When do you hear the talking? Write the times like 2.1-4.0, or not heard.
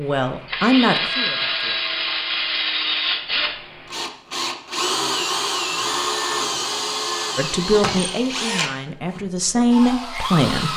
0.0-1.8, 7.3-10.7.